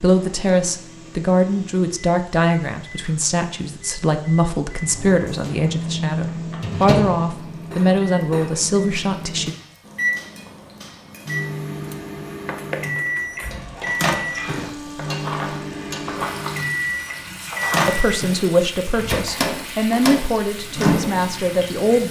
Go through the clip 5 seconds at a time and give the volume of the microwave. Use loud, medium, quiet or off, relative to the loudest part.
quiet, loud, loud, loud, loud.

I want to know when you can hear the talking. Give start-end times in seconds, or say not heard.
0.0-9.6, 17.9-22.0.